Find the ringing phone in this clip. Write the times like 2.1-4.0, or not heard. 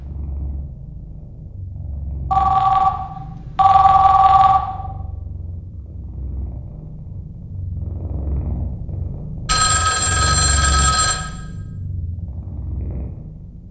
2.3-4.6, 9.4-11.2.